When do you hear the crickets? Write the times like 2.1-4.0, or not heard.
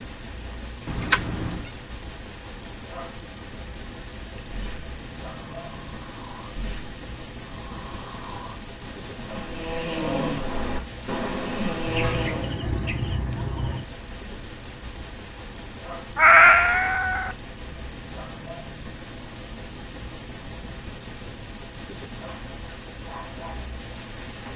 0.0-24.5.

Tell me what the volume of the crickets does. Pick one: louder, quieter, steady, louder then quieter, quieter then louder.
steady.